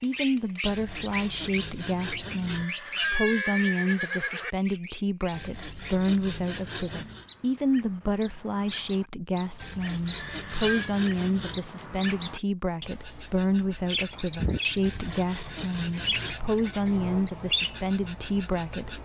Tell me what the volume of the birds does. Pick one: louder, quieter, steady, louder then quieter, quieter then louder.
quieter then louder.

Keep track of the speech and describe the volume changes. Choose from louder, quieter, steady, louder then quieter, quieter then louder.
steady.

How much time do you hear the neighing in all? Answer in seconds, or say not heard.
3 s.